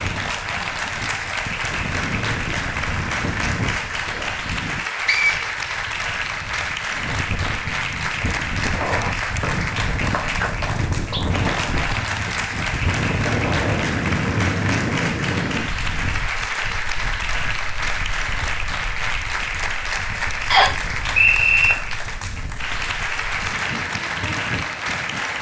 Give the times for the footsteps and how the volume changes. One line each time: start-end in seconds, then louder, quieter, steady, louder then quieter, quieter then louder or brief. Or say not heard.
not heard.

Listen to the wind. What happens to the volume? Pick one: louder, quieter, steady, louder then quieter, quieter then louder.
louder then quieter.